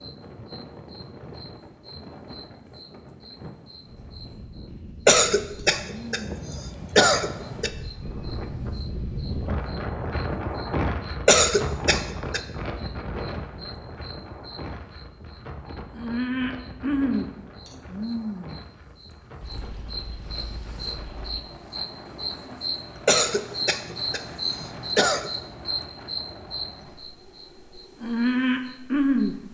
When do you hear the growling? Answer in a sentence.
The growling can't be heard in this clip.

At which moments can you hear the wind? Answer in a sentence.
The wind can be heard from 0.0 to 29.5 s.